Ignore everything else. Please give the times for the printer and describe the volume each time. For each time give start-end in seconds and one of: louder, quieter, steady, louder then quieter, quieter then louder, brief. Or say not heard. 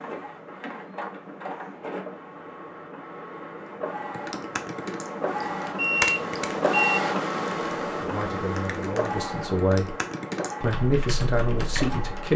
0.0-12.3 louder then quieter.